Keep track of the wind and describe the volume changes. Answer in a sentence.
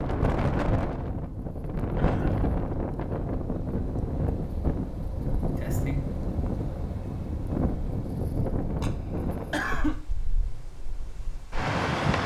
The loudness of the wind goes down.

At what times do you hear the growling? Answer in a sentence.
You can't hear the growling here.